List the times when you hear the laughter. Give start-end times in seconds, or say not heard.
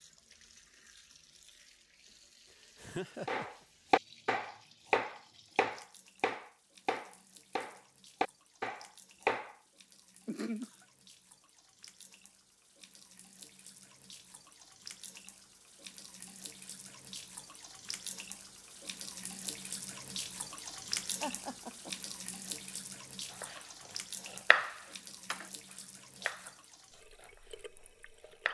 2.8-3.5, 10.2-10.8, 21.2-21.9.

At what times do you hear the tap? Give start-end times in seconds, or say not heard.
0.0-28.5.